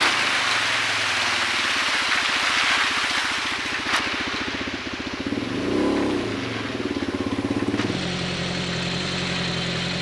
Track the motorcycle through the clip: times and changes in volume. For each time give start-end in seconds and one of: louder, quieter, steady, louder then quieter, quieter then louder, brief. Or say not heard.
0.0-9.9 louder.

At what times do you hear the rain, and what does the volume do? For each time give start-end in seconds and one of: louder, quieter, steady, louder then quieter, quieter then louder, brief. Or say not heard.
0.0-9.9 quieter.